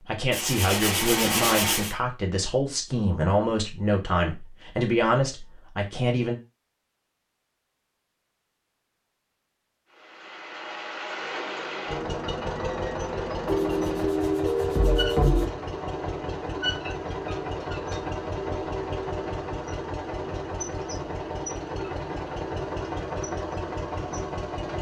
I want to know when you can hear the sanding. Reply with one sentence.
The sanding can be heard from 0.3 to 1.9 s and from 13.4 to 15.4 s.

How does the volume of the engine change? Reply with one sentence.
The loudness of the engine stays about the same.